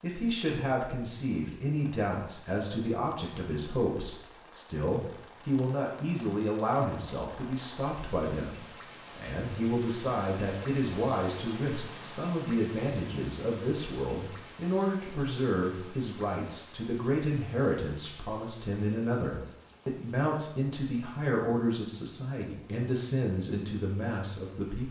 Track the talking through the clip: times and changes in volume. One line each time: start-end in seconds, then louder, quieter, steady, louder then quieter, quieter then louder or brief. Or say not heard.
0.0-24.8 steady.